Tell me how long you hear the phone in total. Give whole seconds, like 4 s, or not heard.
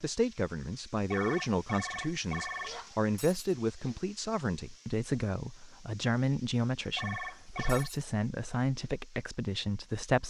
3 s.